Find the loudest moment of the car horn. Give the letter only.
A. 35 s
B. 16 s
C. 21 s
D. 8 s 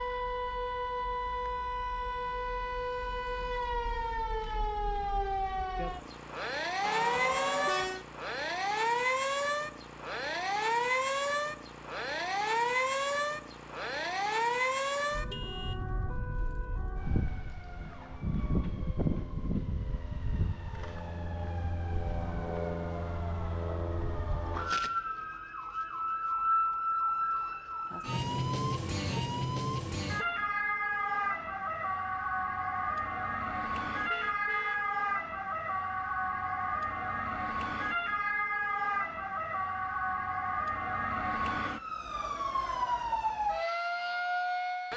D.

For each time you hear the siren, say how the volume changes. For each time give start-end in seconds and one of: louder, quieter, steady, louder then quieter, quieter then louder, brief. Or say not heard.
0.0-44.9 steady.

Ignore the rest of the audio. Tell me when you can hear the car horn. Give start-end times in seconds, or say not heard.
6.8-8.1, 15.3-15.8, 34.1-34.9.